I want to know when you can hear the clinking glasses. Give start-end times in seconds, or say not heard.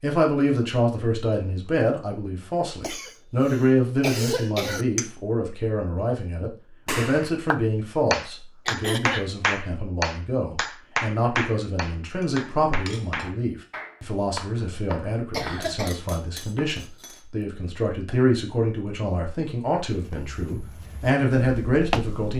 12.2-13.3, 15.6-17.2.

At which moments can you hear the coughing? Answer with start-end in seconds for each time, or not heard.
2.8-4.8, 8.7-9.3, 15.3-16.0.